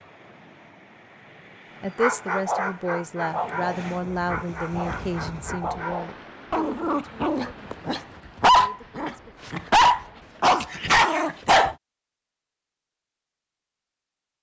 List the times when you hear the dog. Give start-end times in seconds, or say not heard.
1.9-11.8.